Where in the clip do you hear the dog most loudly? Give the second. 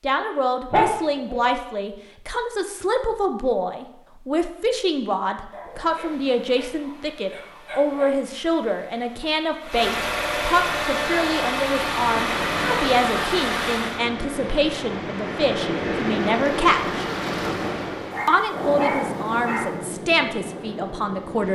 1 s.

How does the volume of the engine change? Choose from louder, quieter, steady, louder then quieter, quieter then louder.
louder.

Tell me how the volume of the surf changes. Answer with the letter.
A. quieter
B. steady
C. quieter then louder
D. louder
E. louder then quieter
E.